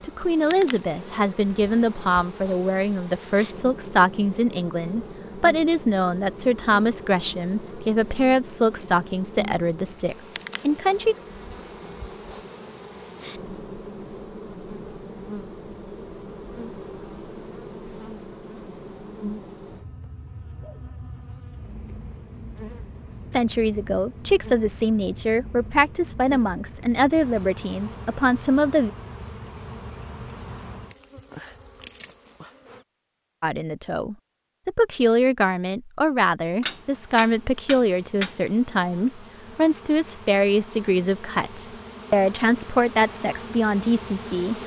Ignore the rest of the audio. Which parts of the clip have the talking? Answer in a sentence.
The talking can be heard from 0.0 to 11.2 s, from 23.3 to 28.9 s and from 33.4 to 44.5 s.